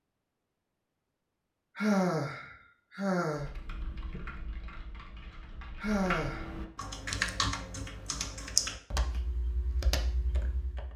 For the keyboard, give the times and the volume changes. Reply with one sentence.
The keyboard can be heard from 3.4 to 10.9 s, getting louder then quieter.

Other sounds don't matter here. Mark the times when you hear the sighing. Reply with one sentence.
You can hear the sighing from 1.8 to 3.5 s and from 5.8 to 6.5 s.